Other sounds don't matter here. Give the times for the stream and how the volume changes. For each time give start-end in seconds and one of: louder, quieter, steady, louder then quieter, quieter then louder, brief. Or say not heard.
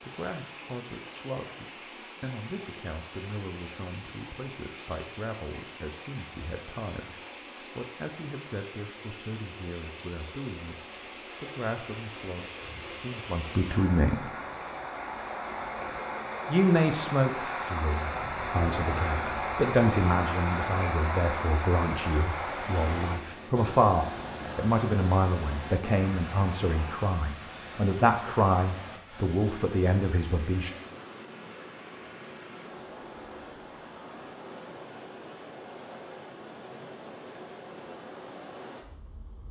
0.0-39.4 louder then quieter.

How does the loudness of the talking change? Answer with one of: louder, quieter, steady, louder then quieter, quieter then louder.
louder.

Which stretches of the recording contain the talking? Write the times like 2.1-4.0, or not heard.
0.0-14.3, 16.4-30.7.